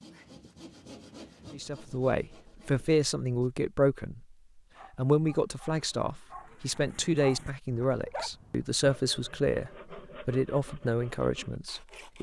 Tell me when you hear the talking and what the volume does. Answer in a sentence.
The talking can be heard briefly from 1.5 to 4.3 s; and from 5.0 to 12.1 s, at a steady volume.